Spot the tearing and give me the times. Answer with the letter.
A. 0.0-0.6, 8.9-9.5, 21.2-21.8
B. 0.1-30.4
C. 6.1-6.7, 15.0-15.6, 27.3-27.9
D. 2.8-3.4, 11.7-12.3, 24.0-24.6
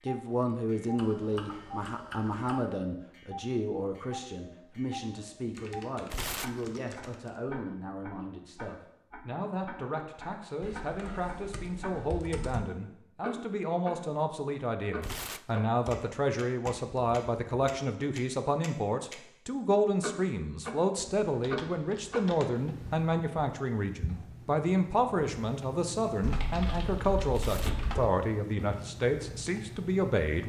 C.